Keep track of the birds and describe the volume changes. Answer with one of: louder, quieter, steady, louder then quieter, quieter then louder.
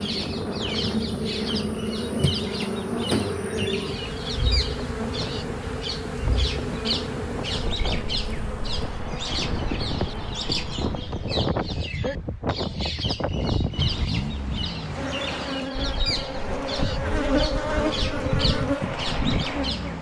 steady.